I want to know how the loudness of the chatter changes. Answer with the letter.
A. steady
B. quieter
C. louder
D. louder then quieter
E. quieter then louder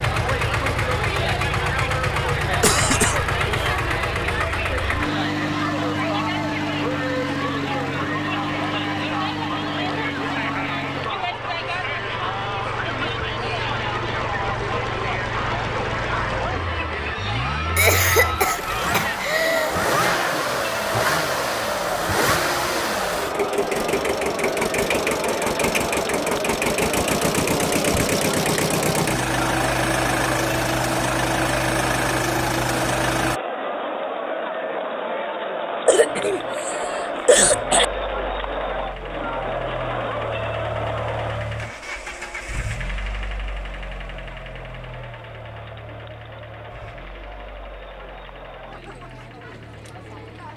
B.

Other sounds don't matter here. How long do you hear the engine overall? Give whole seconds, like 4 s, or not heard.
48 s.